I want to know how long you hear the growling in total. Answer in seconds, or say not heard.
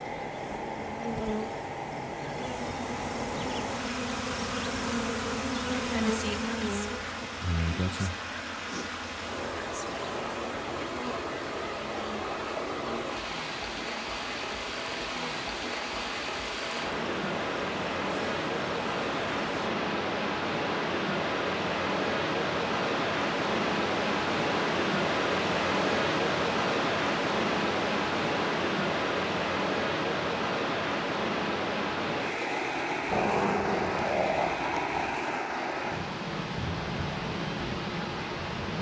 2 s.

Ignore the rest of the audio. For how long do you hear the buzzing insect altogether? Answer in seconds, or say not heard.
20 s.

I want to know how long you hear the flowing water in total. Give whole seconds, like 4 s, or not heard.
39 s.